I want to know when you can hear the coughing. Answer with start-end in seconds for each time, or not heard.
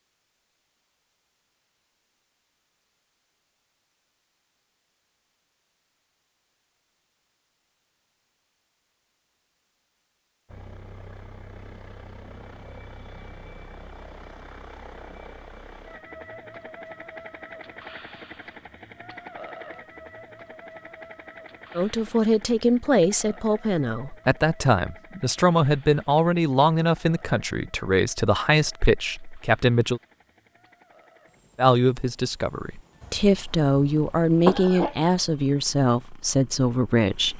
33.0-35.0.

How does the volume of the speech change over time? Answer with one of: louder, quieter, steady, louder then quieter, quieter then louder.
steady.